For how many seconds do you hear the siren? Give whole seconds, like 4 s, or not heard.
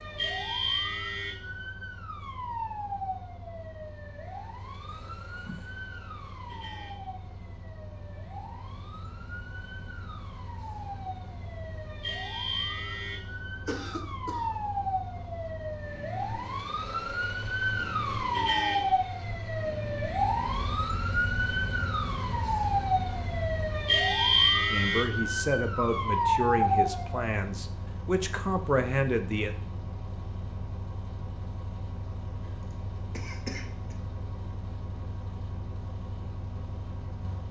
27 s.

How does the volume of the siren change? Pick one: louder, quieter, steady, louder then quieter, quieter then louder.
quieter then louder.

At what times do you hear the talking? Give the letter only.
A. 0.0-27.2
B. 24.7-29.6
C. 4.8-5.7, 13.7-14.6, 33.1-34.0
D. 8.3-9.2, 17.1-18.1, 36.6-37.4
B.